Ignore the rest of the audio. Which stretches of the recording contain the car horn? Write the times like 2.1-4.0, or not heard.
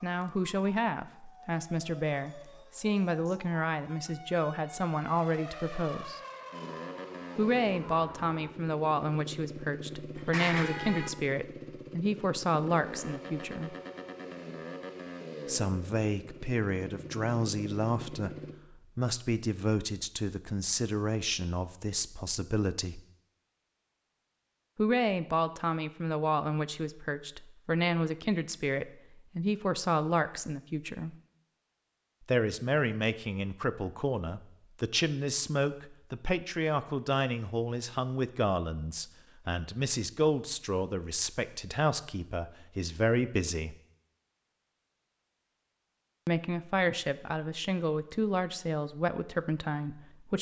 10.2-11.1.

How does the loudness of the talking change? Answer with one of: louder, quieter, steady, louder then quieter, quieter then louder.
steady.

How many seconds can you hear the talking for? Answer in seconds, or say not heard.
42 s.